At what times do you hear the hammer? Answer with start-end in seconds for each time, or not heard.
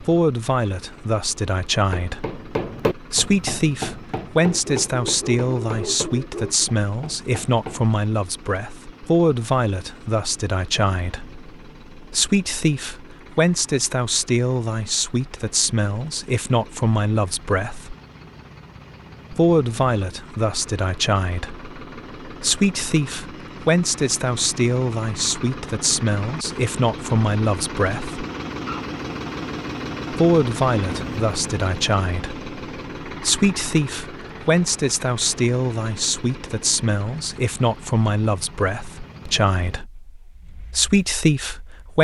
1.9-8.0.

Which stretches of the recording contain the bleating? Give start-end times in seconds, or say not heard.
not heard.